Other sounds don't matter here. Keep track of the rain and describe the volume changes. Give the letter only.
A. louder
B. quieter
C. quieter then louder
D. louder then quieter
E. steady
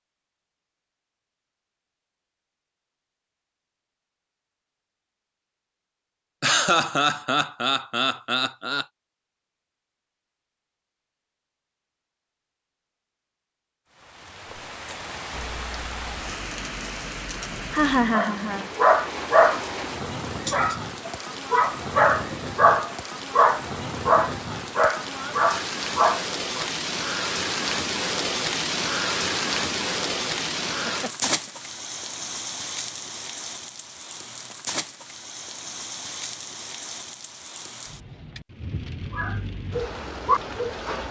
D.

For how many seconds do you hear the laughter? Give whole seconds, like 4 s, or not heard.
4 s.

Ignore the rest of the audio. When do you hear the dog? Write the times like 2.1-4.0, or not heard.
18.1-19.6, 20.4-26.7, 39.1-41.0.